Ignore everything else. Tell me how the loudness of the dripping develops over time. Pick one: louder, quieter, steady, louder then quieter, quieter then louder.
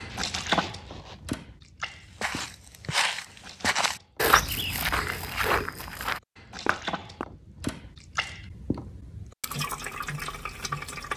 quieter then louder.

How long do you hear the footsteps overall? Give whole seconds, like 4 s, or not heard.
5 s.